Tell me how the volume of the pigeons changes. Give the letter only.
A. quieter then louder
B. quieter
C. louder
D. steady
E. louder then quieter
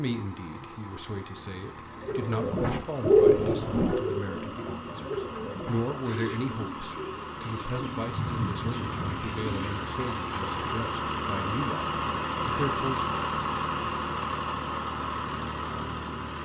B.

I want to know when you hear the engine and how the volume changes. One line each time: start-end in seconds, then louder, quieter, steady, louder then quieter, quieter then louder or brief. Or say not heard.
0.0-16.4 louder.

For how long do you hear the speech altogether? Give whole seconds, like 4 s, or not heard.
13 s.